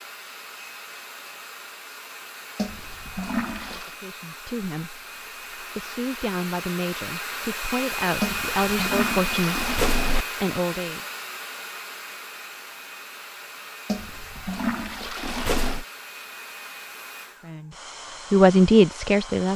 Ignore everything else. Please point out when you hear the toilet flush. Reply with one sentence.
You can hear the toilet flush from 2.5 to 4.0 s, from 8.2 to 10.2 s and from 13.8 to 15.8 s.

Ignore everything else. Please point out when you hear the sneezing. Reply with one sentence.
You can't hear the sneezing here.